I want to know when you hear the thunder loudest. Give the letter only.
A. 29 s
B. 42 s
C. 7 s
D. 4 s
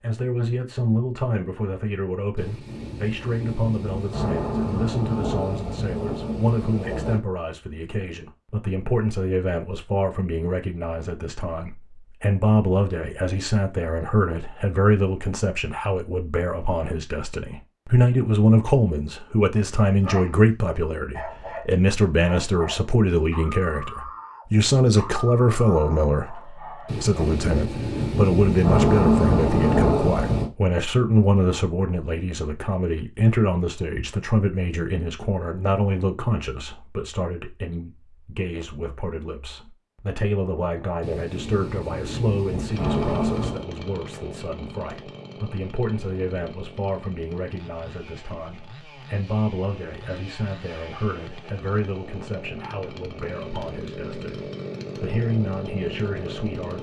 A.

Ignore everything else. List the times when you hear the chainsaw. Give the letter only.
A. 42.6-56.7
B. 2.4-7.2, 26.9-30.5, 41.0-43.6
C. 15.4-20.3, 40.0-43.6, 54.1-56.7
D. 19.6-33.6
A.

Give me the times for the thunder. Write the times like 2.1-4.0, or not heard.
2.4-7.2, 26.9-30.5, 41.0-43.6.